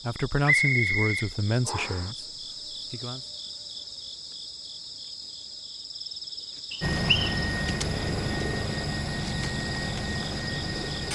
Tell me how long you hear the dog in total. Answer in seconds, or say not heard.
not heard.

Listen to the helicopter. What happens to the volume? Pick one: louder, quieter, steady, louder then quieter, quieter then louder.
steady.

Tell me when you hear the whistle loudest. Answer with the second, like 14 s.
1 s.